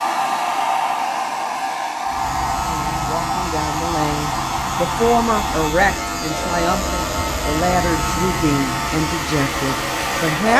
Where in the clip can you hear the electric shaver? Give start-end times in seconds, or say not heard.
2.0-10.5.